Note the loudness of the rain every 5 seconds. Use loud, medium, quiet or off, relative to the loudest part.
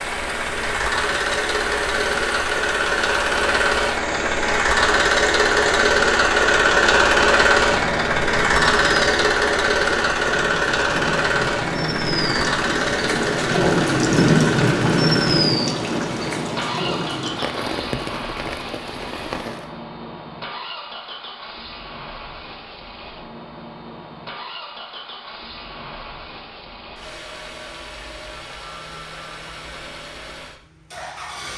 medium, medium, loud, loud, off, off, off.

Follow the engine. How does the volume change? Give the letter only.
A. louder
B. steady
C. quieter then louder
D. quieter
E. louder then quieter
D.